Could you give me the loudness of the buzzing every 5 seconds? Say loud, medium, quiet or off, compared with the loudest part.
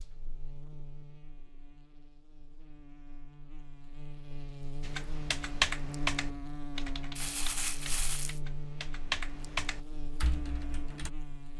medium, loud, loud.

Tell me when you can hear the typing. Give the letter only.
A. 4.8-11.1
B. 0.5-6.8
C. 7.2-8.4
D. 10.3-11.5
A.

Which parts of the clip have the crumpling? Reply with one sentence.
You can hear the crumpling from 7.2 to 8.4 s.